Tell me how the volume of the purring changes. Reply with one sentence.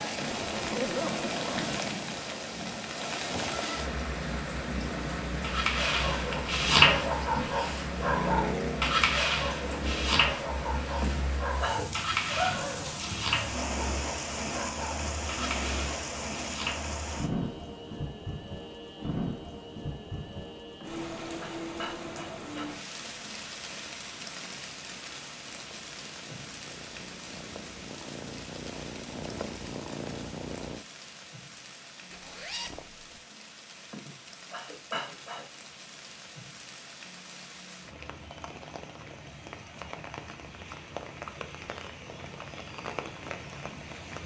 The loudness of the purring goes up.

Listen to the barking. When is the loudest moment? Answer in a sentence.
The volume of the barking peaks at 7 seconds.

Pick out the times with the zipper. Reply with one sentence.
The zipper can be heard from 0.2 to 1.8 s and from 32.1 to 33.1 s.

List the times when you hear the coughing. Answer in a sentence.
The coughing can be heard from 11.0 to 12.1 s, from 20.8 to 22.7 s and from 33.9 to 35.5 s.